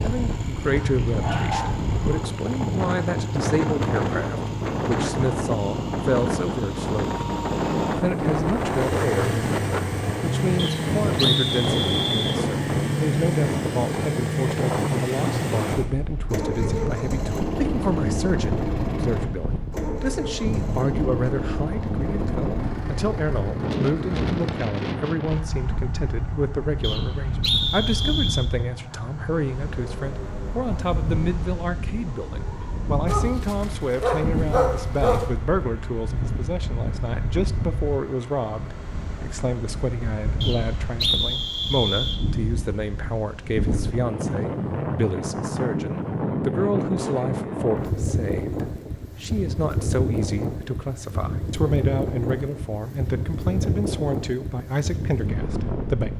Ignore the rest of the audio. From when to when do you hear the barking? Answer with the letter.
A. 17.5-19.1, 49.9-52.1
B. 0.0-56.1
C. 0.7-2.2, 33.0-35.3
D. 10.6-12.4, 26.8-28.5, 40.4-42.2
C.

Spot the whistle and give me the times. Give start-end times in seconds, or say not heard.
10.6-12.4, 26.8-28.5, 40.4-42.2.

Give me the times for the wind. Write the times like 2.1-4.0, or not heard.
0.0-56.1.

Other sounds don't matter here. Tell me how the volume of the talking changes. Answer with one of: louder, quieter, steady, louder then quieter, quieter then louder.
steady.